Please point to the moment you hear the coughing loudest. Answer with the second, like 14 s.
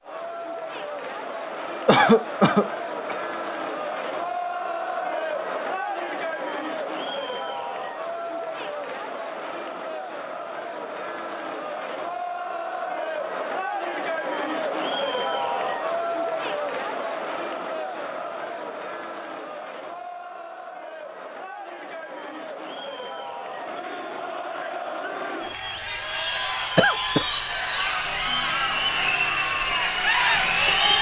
2 s.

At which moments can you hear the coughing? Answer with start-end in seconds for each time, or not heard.
1.9-3.1, 26.8-27.2.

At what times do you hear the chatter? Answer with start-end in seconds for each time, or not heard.
0.0-30.9.